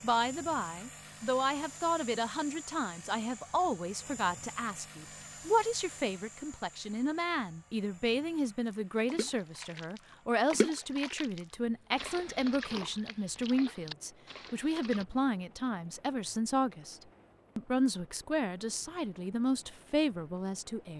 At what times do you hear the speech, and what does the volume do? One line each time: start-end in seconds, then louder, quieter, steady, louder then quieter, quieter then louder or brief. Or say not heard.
0.0-20.9 steady.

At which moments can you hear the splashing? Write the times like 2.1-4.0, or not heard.
8.6-15.1.